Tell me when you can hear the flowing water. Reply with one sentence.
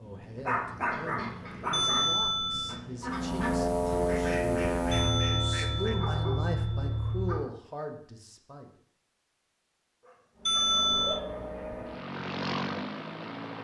The flowing water can't be heard in this clip.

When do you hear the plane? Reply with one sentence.
You can hear the plane from 3.0 to 7.2 s and from 10.3 to 13.6 s.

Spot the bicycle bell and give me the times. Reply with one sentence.
The bicycle bell can be heard from 1.7 to 2.8 s, from 4.9 to 7.2 s and from 10.4 to 11.2 s.